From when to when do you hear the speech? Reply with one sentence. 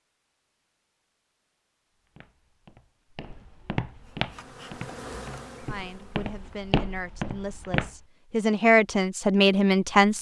The speech can be heard from 5.7 to 10.1 s.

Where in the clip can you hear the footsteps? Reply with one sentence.
The footsteps can be heard from 1.9 to 7.9 s.